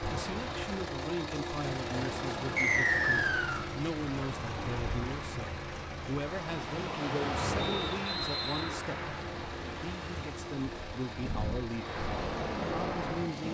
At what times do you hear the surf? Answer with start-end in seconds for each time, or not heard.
0.0-13.4.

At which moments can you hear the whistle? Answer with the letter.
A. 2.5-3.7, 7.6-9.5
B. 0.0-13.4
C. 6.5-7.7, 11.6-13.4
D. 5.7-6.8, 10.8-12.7
A.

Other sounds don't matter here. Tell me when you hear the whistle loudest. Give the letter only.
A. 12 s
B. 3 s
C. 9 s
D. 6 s
B.